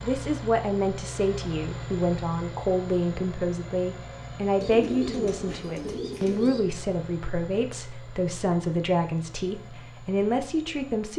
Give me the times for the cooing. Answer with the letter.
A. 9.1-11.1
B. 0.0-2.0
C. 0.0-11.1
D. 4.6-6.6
D.